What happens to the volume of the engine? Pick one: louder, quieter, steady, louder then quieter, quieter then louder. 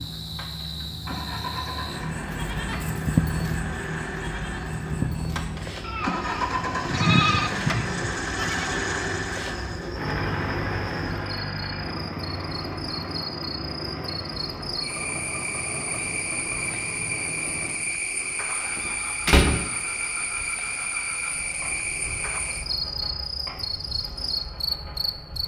louder then quieter.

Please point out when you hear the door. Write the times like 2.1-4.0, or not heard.
18.8-19.6.